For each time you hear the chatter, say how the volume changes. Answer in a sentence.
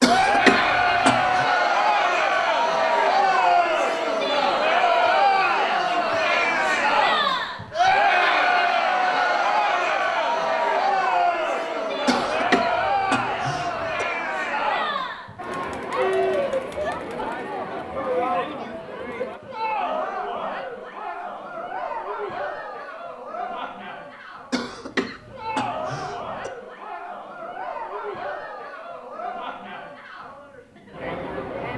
You can hear the chatter from 0.0 to 31.7 s, getting quieter.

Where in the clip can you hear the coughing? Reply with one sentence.
The coughing can be heard from 0.0 to 1.4 s, from 12.1 to 14.1 s and from 24.5 to 26.5 s.